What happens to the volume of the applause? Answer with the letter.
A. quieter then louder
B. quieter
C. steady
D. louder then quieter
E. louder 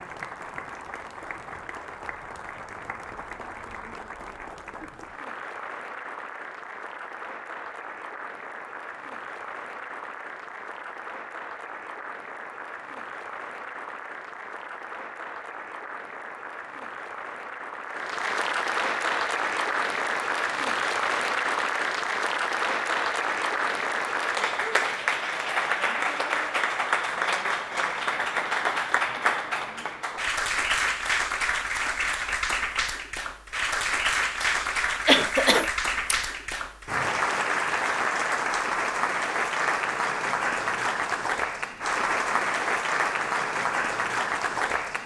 E.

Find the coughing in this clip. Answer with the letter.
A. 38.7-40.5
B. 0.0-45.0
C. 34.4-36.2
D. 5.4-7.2
C.